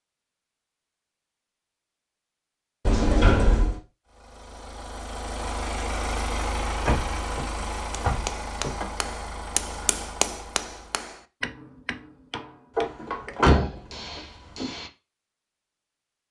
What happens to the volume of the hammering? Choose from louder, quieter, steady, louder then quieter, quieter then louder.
quieter.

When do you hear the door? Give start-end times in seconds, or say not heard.
2.9-3.8, 6.8-8.8, 12.8-14.7.